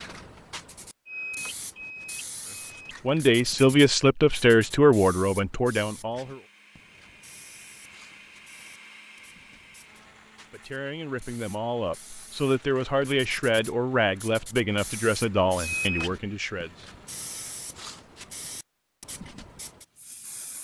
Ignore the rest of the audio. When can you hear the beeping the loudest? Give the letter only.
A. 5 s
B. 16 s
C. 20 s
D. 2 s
B.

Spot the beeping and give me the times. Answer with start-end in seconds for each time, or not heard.
1.1-3.0, 15.6-16.1.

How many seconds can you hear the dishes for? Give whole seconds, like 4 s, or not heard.
not heard.